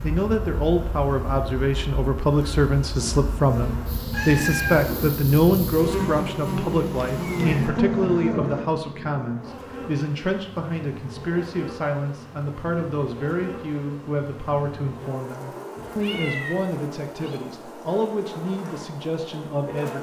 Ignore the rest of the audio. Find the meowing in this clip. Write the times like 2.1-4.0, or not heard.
4.1-4.9, 7.2-7.6, 15.8-17.4.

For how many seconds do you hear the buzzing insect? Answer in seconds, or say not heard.
20 s.